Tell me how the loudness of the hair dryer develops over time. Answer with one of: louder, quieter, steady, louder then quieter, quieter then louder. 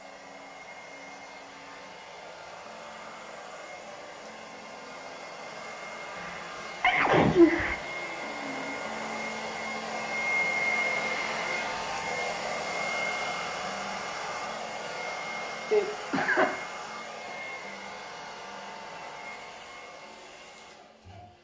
louder then quieter.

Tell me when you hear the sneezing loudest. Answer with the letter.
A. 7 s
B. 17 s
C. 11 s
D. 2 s
A.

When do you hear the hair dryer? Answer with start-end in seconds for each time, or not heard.
0.0-21.3.